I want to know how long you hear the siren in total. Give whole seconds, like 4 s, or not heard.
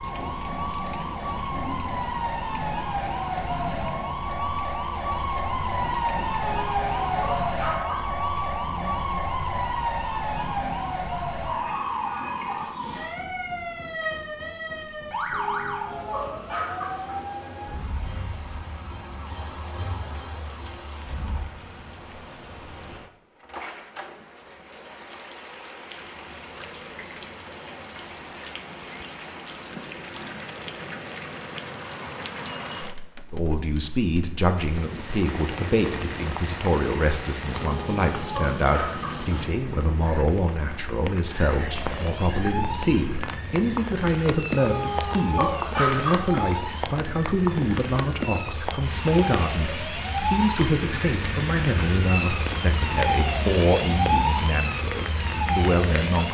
36 s.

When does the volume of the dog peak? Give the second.
46 s.